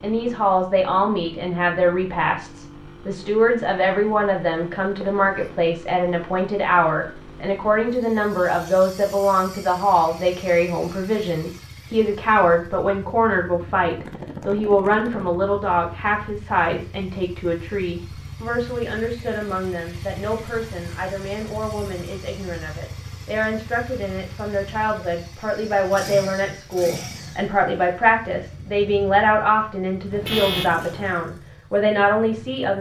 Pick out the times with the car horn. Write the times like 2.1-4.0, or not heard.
5.0-5.6, 30.1-30.8.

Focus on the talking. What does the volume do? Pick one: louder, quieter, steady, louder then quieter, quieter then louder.
quieter then louder.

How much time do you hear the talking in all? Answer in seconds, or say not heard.
33 s.